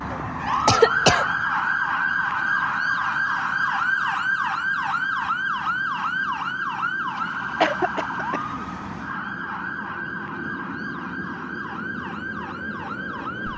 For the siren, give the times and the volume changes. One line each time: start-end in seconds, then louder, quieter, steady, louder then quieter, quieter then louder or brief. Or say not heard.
0.0-13.5 quieter.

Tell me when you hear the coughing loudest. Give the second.
1 s.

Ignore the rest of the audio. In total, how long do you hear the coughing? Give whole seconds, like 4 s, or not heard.
3 s.